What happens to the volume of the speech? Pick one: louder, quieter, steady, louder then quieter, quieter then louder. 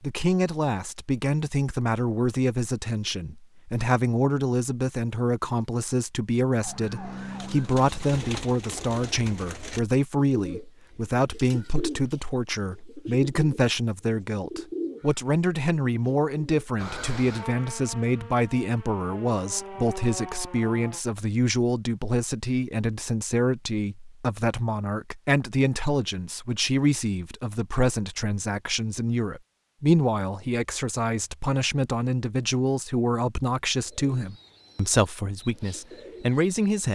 steady.